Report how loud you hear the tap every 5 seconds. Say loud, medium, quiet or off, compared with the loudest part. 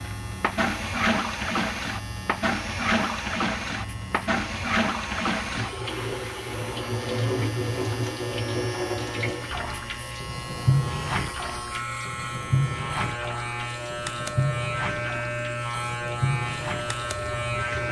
loud, loud, loud, medium.